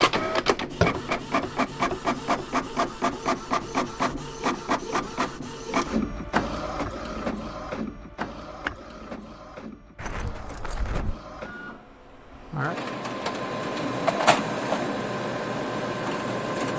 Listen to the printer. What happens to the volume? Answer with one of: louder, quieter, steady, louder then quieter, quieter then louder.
quieter then louder.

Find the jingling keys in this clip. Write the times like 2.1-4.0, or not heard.
9.9-11.2.